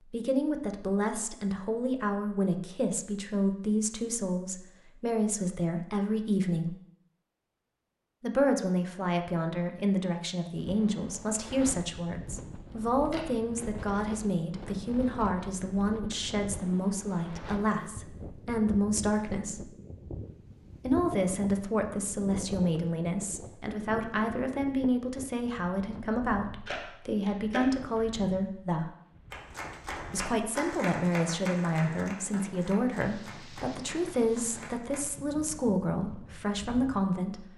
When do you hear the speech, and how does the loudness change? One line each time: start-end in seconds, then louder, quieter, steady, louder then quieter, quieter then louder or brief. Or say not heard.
0.1-6.8 steady
8.2-19.7 steady
20.8-28.9 steady
30.1-37.5 steady.